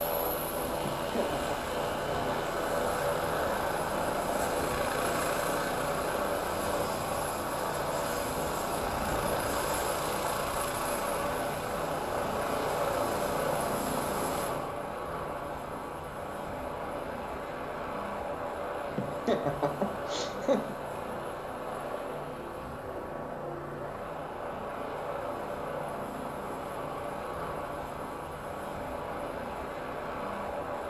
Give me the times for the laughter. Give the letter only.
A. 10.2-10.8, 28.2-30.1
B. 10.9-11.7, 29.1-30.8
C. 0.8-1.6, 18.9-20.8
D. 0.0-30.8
C.